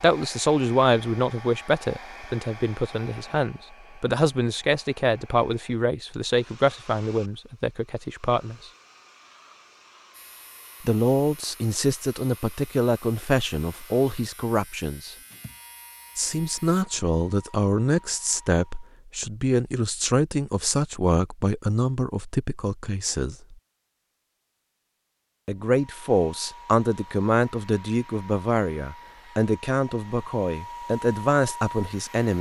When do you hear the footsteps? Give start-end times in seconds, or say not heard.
not heard.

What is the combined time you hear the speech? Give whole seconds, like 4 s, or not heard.
27 s.